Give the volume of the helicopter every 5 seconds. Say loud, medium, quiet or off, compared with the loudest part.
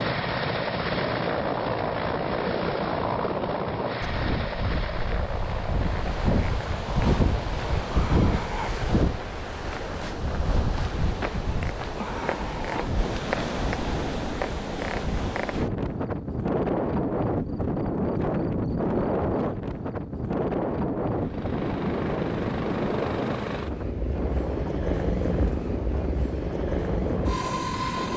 loud, medium, off, off, loud, loud.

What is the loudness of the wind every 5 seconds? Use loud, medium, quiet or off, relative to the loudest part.
medium, loud, loud, loud, loud, medium.